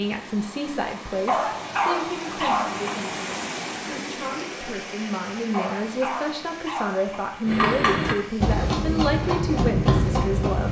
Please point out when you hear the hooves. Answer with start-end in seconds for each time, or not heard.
7.5-10.6.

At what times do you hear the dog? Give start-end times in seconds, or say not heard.
1.2-2.9, 5.5-7.2.